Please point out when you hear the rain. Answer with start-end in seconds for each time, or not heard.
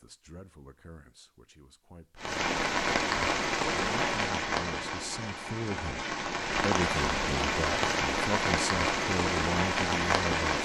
2.1-10.6.